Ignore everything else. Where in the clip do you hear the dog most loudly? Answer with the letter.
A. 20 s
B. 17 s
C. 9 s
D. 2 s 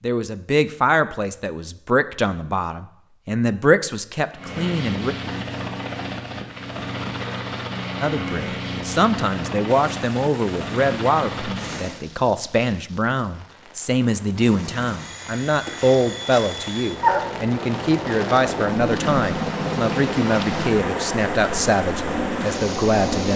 B.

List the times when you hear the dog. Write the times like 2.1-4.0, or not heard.
15.7-17.2.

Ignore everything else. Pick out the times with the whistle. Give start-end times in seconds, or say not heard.
not heard.